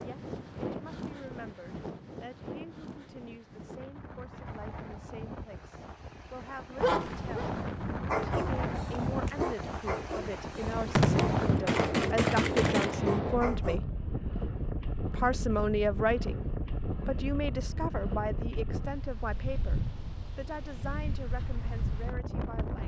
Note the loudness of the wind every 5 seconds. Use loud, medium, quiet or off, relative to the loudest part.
medium, loud, loud, loud, medium.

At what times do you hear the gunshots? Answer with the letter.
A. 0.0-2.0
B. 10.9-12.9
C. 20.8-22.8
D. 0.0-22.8
B.